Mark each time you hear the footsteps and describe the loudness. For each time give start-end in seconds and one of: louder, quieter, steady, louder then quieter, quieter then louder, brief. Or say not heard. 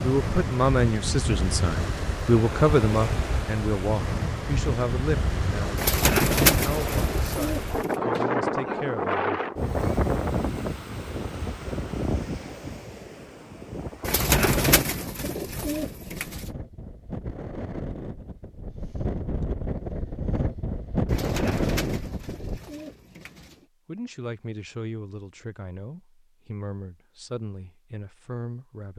not heard.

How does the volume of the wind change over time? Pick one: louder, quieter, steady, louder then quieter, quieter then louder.
quieter then louder.